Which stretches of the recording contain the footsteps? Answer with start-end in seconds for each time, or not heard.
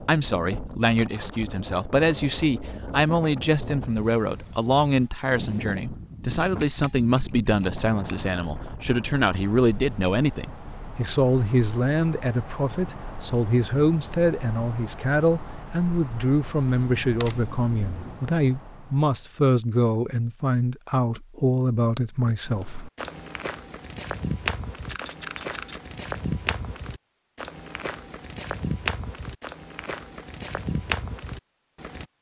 22.4-32.0.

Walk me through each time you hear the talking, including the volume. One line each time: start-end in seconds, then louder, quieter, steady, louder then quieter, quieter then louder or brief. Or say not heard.
0.0-22.9 steady.